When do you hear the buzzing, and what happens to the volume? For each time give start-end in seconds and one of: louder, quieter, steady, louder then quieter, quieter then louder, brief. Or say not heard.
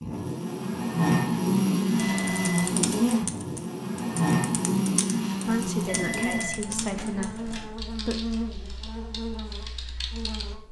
0.0-10.6 quieter.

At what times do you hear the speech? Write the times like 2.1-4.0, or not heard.
5.5-8.2.